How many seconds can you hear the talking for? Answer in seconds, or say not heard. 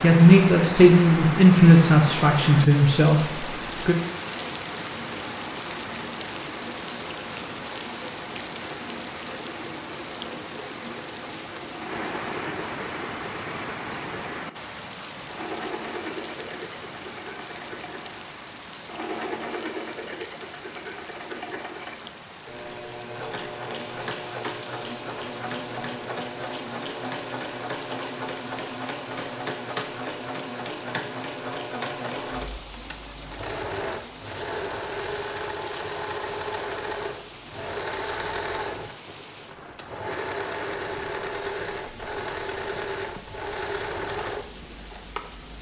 4 s.